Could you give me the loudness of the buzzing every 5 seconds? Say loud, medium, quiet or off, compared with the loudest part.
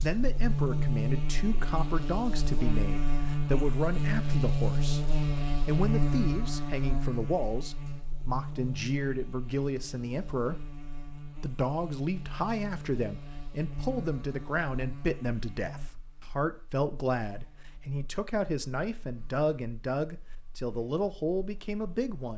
loud, loud, quiet, quiet, quiet.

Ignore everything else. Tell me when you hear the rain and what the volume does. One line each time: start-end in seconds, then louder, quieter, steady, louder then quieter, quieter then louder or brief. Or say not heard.
not heard.